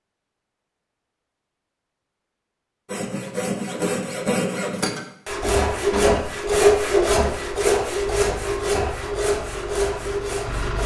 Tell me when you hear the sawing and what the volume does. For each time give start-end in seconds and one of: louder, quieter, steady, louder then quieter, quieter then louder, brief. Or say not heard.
2.9-10.8 louder then quieter.